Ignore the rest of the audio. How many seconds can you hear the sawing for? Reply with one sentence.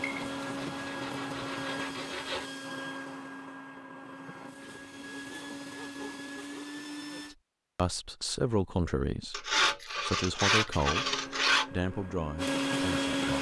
You can hear the sawing for 7 seconds altogether.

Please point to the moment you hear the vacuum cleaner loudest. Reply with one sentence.
The volume of the vacuum cleaner peaks at 13 seconds.